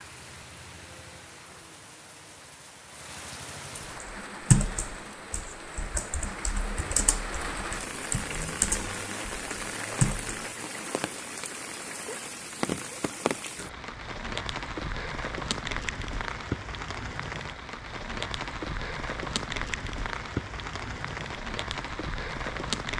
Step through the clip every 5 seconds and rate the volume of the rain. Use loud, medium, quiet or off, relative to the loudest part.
medium, loud, loud, loud, loud.